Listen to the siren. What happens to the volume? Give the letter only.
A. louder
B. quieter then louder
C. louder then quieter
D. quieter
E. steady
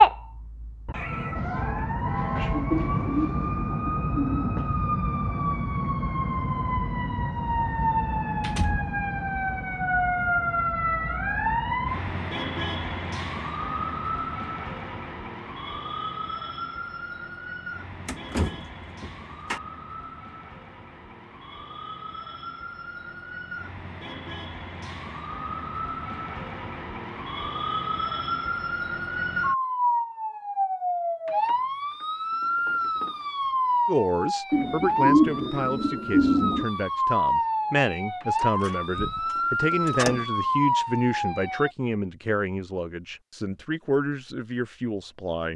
B.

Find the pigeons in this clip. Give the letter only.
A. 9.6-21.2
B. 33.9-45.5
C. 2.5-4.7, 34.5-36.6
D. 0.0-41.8
C.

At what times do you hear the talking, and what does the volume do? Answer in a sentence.
You can hear the talking from 33.9 to 45.5 s, at a steady volume.